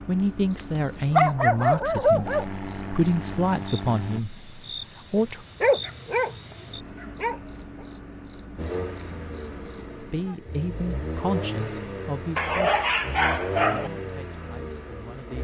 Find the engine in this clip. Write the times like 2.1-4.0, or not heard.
2.2-4.2, 8.6-15.3.